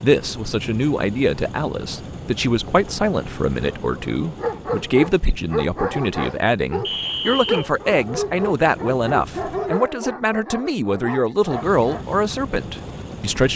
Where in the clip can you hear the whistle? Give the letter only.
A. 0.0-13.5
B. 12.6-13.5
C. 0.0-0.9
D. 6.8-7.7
D.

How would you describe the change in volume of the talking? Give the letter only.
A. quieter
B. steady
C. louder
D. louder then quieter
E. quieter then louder
B.